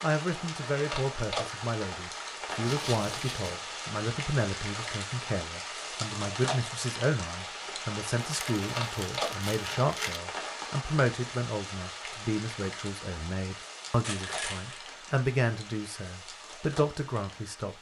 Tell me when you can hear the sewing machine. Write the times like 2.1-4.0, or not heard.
not heard.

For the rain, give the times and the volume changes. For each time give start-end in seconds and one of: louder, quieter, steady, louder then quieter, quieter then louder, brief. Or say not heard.
0.0-17.7 quieter.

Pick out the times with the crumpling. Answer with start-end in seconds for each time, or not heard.
2.6-3.5, 8.2-10.2, 14.0-14.8.